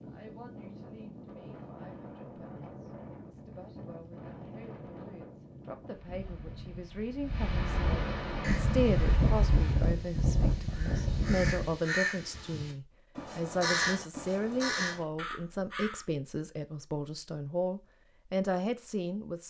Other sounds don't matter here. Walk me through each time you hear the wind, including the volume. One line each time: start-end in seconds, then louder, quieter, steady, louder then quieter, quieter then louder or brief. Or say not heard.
0.0-11.8 louder.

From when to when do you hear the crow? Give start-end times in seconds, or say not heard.
8.2-16.1.